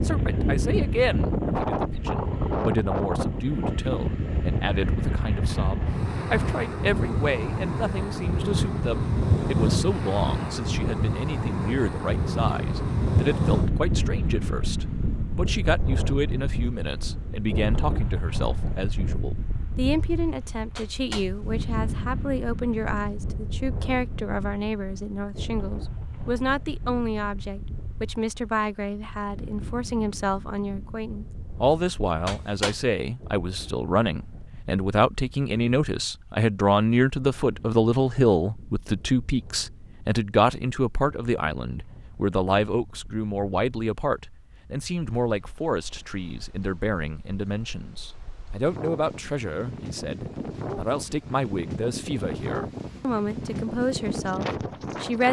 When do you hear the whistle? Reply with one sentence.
The whistle can't be heard in this clip.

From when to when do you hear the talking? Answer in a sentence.
The talking can be heard from 0.0 to 55.2 s.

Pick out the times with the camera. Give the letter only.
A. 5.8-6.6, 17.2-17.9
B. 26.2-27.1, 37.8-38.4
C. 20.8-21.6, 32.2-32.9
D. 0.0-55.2
C.